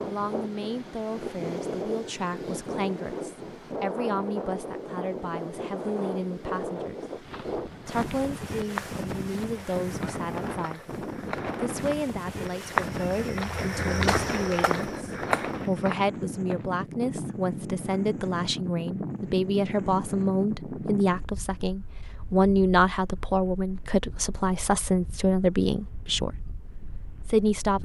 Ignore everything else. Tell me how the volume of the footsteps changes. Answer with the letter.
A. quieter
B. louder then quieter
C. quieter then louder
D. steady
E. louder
C.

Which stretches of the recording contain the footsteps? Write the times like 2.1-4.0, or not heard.
7.2-16.7.